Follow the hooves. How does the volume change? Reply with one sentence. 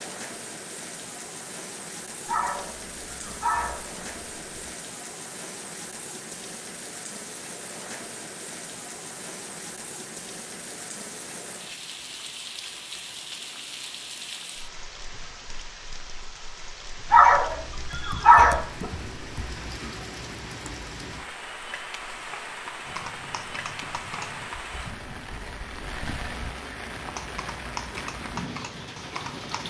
The loudness of the hooves goes down, then up.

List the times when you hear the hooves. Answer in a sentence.
You can hear the hooves from 22.9 to 29.6 s.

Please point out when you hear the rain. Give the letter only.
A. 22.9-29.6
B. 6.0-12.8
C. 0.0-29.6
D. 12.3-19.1
C.